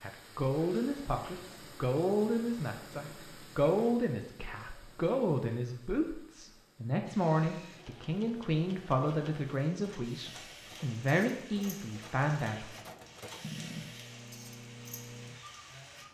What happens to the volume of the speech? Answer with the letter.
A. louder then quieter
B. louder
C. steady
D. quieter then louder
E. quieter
C.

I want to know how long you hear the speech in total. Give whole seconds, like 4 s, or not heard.
13 s.